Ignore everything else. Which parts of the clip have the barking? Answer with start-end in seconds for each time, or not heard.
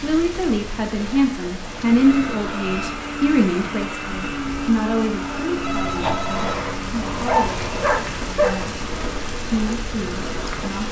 7.2-8.6.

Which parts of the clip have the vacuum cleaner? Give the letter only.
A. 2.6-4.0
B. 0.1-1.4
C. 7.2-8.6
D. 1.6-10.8
D.